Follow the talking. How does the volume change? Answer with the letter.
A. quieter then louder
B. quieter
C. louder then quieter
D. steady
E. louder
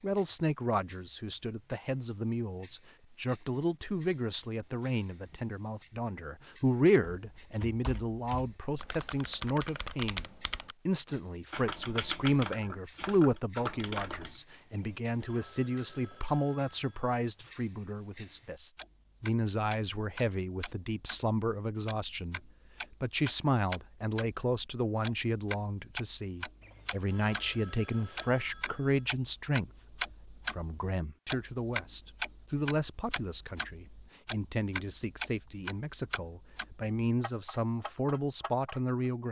D.